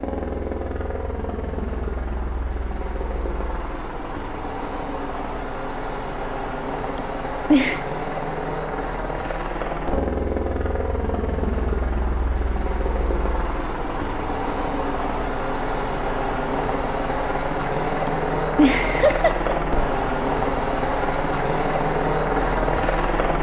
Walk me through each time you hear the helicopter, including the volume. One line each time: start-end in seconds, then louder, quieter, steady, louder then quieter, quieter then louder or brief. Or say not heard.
0.0-23.3 louder.